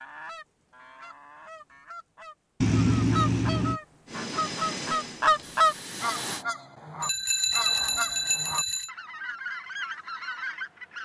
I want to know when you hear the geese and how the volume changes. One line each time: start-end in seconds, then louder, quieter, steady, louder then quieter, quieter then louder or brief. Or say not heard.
0.0-11.0 louder then quieter.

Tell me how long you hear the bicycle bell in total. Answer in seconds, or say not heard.
3 s.